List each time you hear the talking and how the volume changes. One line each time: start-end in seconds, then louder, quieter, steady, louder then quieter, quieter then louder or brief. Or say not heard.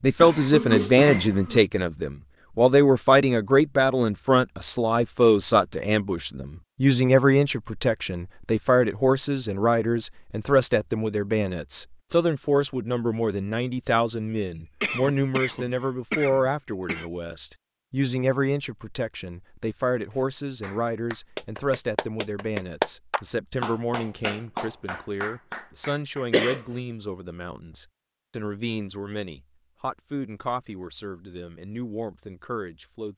0.0-33.1 quieter.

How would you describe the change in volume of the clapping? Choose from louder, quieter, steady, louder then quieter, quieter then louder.
louder then quieter.